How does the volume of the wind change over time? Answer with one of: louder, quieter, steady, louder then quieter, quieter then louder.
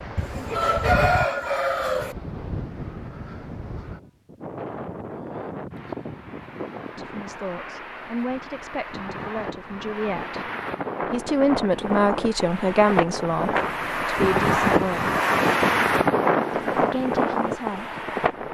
louder.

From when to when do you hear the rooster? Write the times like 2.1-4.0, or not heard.
0.1-2.1.